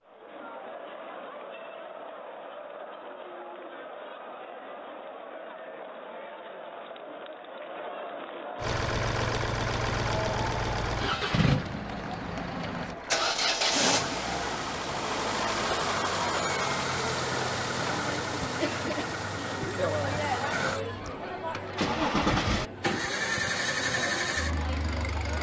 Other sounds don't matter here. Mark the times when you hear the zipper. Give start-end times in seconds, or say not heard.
not heard.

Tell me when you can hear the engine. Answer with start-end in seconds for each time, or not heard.
8.6-25.3.